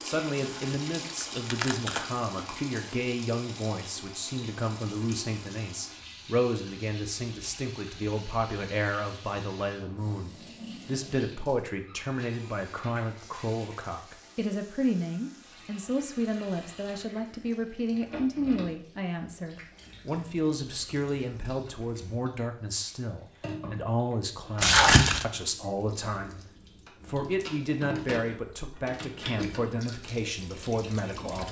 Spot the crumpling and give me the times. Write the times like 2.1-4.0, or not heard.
0.5-2.2, 24.6-25.2.